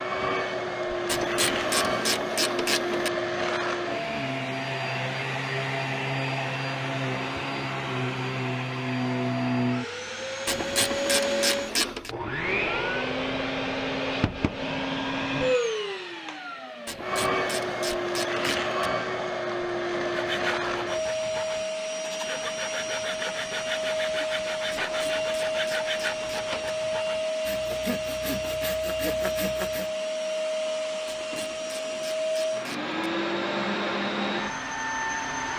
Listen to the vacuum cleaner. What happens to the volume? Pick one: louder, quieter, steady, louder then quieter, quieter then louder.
steady.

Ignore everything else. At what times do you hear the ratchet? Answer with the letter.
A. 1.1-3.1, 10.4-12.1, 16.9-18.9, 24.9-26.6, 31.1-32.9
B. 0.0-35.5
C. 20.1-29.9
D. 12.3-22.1
A.